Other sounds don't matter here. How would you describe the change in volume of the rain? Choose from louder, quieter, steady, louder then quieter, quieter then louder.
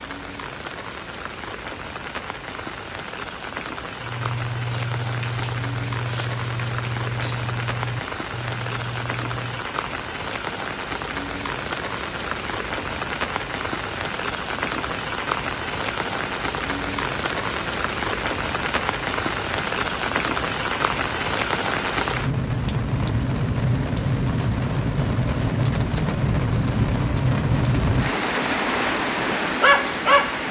louder.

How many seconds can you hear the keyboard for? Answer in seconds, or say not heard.
6 s.